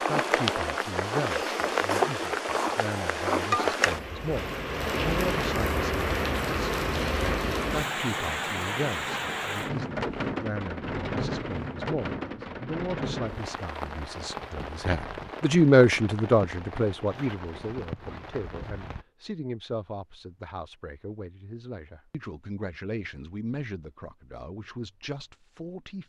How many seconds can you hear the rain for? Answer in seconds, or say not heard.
19 s.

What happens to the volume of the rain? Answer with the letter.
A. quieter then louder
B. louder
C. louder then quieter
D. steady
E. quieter
E.